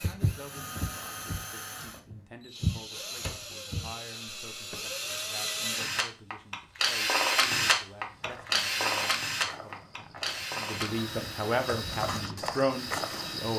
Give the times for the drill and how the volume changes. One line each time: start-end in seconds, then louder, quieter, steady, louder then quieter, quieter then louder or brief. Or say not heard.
0.0-13.5 louder then quieter.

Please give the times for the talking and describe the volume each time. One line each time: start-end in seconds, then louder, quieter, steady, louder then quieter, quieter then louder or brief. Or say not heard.
0.1-13.5 louder.